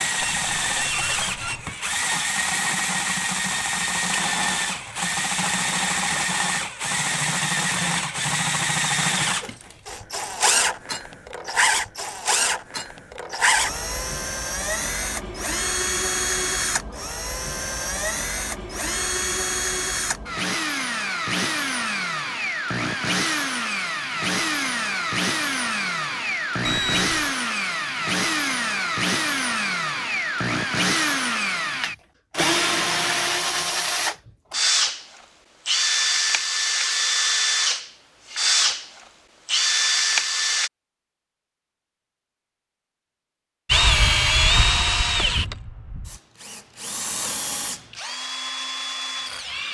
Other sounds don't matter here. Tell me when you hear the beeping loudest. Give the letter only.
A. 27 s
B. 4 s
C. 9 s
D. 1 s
A.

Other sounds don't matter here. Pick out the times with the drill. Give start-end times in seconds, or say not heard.
0.0-40.7, 43.6-49.6.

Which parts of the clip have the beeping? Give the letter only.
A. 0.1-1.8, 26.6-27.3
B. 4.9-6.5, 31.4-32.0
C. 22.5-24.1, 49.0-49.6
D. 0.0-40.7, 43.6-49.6
A.